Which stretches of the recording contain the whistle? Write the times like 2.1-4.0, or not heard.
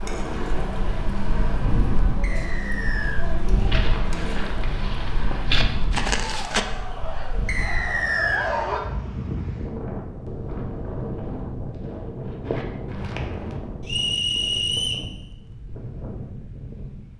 2.2-3.2, 7.5-8.5, 13.8-15.1.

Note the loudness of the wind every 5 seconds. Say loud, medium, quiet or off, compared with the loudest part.
loud, loud, loud, medium.